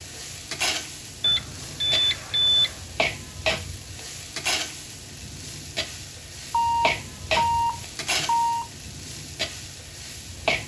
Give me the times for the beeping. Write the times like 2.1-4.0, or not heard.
1.2-2.8, 6.5-8.7.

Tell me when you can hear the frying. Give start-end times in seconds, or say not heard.
0.0-10.6.